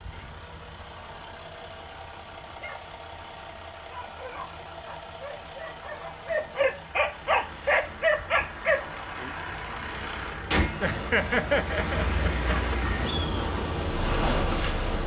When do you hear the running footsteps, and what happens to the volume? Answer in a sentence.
The running footsteps can't be heard in this clip.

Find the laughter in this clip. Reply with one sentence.
The laughter can be heard from 10.8 to 12.8 s.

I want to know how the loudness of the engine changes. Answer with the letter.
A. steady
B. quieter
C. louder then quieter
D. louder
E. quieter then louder
D.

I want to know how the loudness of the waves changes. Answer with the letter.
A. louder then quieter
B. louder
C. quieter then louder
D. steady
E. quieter
B.